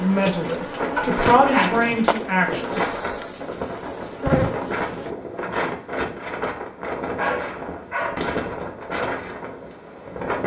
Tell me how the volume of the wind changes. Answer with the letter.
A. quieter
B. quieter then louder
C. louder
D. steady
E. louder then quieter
D.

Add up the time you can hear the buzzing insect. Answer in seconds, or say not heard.
5 s.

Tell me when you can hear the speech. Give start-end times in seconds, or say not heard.
0.0-2.8.